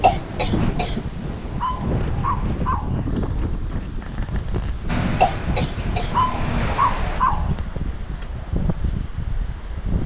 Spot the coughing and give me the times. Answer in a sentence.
You can hear the coughing from 0.0 to 1.1 s and from 5.2 to 6.2 s.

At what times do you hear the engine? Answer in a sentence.
You can hear the engine from 4.8 to 7.2 s.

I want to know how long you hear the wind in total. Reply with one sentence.
You can hear the wind for 10 seconds altogether.